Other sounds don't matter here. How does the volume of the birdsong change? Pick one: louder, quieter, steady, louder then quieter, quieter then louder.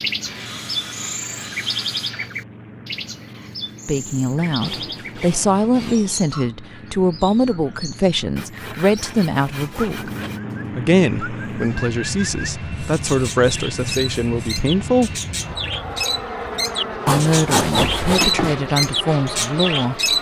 quieter then louder.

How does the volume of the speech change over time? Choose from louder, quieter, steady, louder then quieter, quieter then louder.
steady.